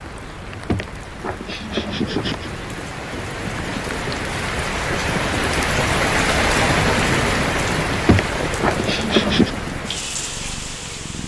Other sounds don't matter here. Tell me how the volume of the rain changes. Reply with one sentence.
The loudness of the rain goes up, then down.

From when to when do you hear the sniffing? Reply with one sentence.
The sniffing can be heard from 0.7 to 2.5 s and from 8.1 to 9.5 s.